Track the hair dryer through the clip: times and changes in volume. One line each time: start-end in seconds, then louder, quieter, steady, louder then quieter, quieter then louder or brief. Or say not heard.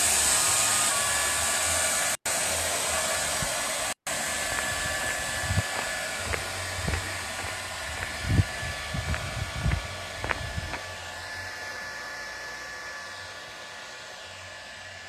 0.0-15.0 quieter.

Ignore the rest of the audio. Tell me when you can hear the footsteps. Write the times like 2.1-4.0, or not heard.
4.3-10.8.